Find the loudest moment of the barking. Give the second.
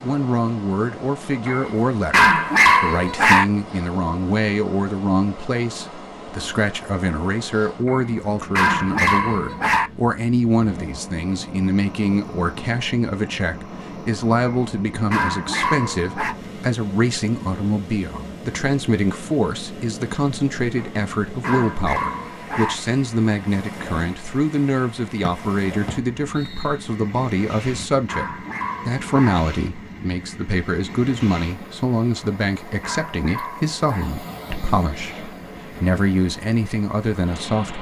3 s.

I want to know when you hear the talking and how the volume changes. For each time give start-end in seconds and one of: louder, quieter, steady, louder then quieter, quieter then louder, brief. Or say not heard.
0.0-37.7 steady.